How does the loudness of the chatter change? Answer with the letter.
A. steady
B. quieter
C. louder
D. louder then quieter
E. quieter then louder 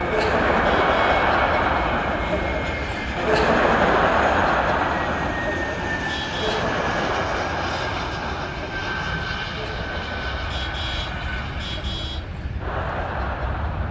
B.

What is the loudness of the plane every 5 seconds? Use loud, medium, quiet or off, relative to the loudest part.
loud, loud, medium.